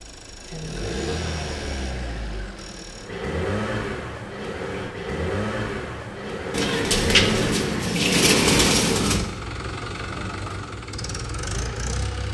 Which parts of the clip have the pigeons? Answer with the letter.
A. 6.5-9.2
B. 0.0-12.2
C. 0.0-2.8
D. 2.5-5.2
A.